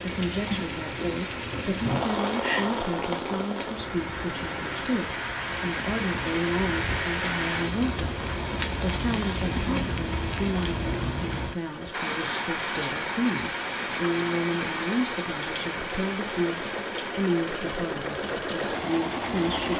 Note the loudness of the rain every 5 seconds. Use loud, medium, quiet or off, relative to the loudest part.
loud, loud, loud, medium.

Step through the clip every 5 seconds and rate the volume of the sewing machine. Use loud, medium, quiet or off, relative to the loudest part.
medium, off, medium, loud.